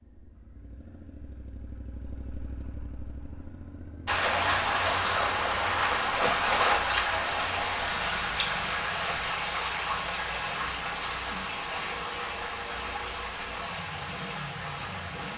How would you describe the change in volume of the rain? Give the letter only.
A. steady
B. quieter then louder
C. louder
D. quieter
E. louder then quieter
D.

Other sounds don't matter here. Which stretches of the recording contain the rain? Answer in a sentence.
You can hear the rain from 4.0 to 15.3 s.